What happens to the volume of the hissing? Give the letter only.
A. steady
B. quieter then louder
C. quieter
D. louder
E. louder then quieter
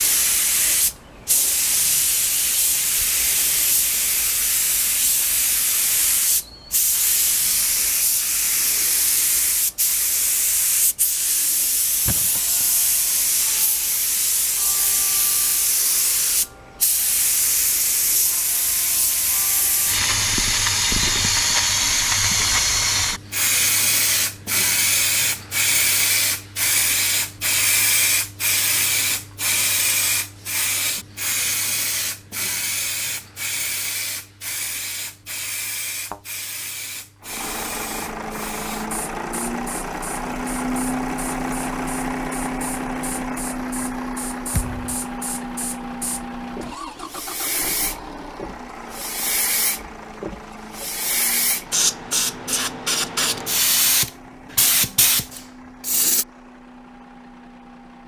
B.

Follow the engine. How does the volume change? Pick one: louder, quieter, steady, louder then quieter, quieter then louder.
quieter.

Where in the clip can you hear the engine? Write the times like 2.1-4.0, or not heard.
37.2-58.0.